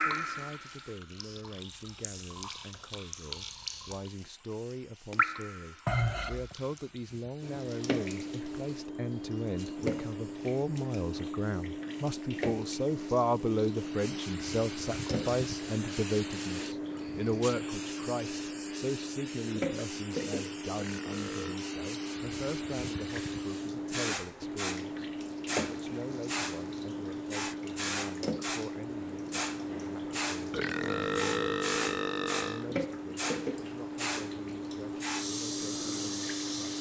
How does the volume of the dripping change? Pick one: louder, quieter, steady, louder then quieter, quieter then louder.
steady.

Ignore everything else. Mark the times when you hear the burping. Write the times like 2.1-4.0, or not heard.
5.8-6.5, 20.8-21.6, 30.5-32.6.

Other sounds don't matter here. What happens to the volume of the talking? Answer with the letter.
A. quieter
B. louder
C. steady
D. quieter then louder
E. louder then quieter
E.